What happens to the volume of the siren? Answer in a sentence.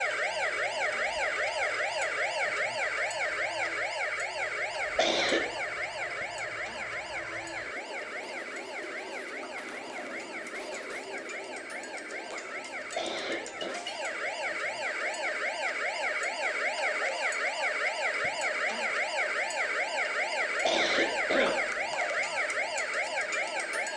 The volume of the siren goes down, then up.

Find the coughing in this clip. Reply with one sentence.
The coughing can be heard from 5.0 to 5.5 s, from 12.9 to 13.8 s and from 20.6 to 21.6 s.